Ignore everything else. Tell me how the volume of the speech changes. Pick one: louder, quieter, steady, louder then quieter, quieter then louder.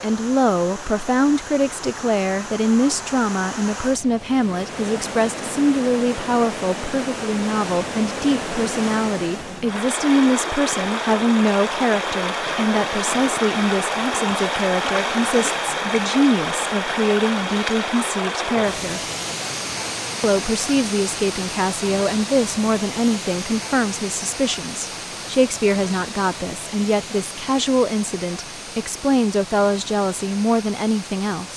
steady.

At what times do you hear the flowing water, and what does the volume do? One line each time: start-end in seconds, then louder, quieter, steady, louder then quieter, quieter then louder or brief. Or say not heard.
0.0-31.5 louder then quieter.